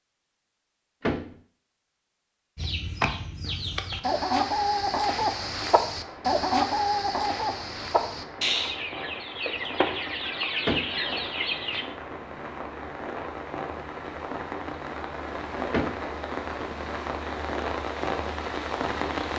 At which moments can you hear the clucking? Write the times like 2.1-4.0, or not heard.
2.5-11.8.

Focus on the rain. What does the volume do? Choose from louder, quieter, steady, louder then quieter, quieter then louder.
louder.